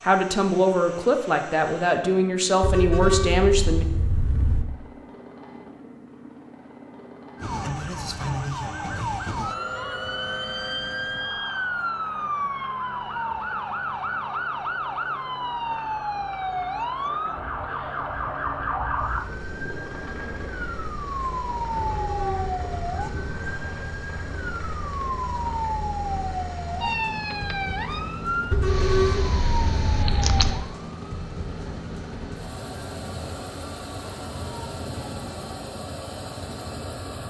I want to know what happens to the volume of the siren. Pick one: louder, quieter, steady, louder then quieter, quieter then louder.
steady.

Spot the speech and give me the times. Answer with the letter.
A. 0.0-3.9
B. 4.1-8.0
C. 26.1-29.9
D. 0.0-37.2
A.